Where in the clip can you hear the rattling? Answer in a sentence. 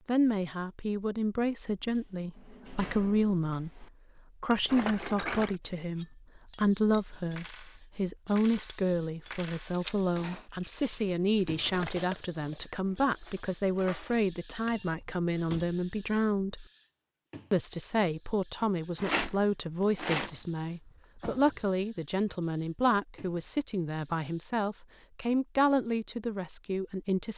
The rattling can be heard from 4.7 to 5.5 s, from 9.7 to 11.6 s and from 18.9 to 20.4 s.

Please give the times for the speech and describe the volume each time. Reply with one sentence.
You can hear the speech from 0.1 to 16.6 s, at a steady volume; and from 17.5 to 27.3 s, at a steady volume.